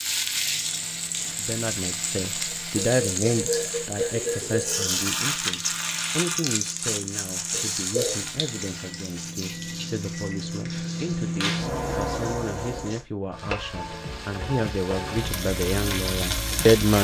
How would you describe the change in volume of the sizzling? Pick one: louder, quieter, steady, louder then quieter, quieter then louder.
quieter then louder.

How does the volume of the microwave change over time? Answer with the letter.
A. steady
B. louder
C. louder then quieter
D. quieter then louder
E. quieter
B.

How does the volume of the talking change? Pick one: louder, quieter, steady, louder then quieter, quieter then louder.
quieter then louder.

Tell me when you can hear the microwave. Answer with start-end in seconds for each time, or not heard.
0.0-13.1.